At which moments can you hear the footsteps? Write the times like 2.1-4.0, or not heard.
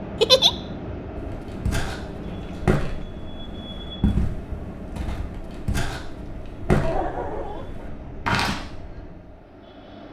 1.1-8.6.